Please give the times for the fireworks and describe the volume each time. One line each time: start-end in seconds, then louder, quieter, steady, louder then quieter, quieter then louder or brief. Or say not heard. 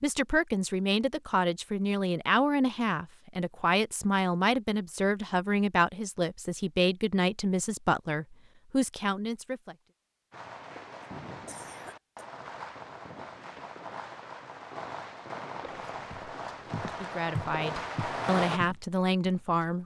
10.3-18.6 louder.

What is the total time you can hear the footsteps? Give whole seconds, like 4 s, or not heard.
4 s.